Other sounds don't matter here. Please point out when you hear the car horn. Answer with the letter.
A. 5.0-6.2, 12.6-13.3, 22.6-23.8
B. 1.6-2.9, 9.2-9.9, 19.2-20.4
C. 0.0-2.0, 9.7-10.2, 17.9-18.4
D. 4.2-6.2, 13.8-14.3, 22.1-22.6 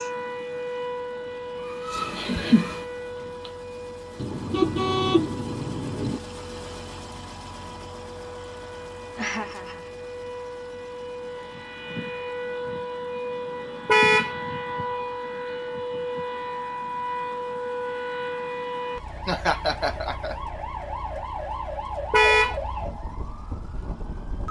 D.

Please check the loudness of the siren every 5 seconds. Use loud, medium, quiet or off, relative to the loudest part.
loud, medium, loud, loud, loud.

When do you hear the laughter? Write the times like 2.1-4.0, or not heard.
1.6-2.9, 9.2-9.9, 19.2-20.4.